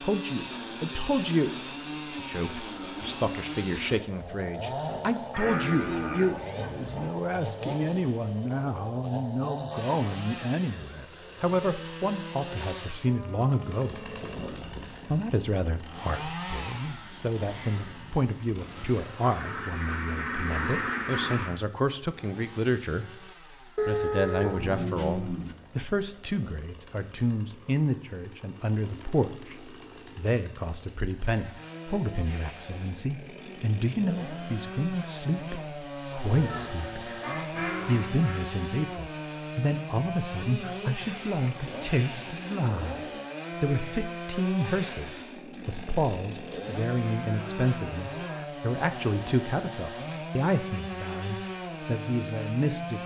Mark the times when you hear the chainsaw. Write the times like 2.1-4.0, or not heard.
0.0-53.0.